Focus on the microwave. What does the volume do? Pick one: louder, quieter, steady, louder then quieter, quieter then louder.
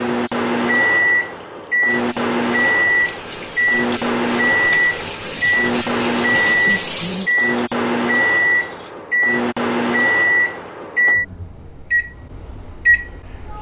steady.